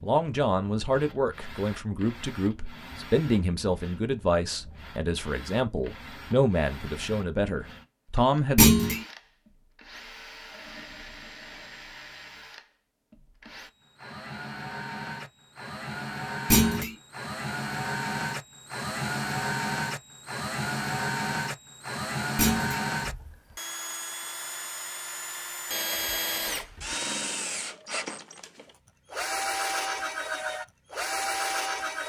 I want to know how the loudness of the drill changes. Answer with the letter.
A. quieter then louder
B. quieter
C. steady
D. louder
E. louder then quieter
D.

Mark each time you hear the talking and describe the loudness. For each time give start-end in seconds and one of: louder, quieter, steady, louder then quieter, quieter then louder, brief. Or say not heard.
0.0-8.8 steady.